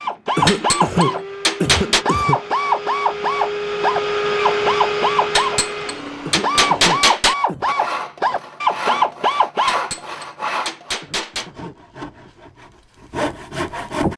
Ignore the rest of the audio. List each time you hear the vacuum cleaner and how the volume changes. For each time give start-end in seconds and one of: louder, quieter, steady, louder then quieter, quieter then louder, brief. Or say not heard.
0.0-7.0 louder then quieter.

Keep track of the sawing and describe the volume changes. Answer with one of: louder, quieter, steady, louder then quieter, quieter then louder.
quieter then louder.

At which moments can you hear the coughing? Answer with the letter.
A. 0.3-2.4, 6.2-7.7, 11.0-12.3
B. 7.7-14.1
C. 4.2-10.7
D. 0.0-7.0
A.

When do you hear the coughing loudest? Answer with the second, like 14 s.
1 s.